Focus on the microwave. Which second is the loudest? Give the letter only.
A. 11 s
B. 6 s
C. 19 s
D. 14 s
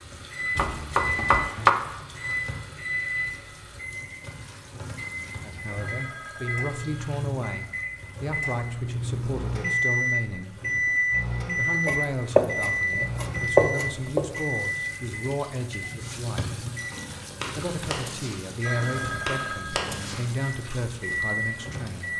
A.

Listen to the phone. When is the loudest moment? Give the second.
19 s.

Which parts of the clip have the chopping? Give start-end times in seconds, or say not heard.
0.6-1.7, 11.8-14.4.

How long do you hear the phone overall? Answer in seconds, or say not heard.
3 s.